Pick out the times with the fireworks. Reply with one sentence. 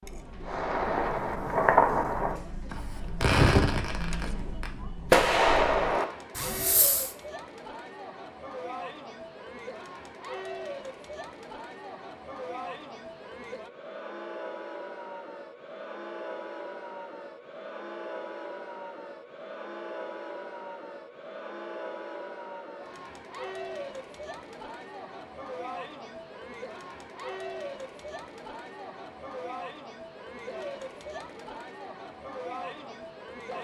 The fireworks can be heard from 0.5 to 7.1 s.